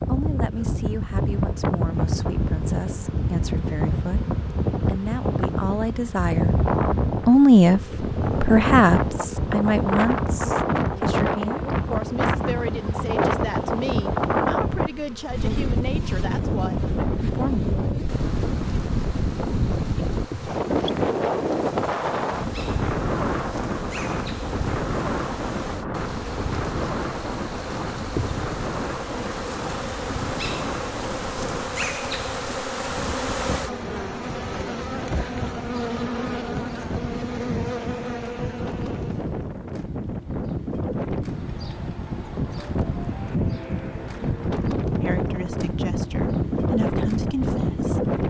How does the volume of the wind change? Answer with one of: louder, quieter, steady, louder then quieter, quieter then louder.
quieter then louder.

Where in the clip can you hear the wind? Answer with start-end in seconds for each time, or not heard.
0.0-48.2.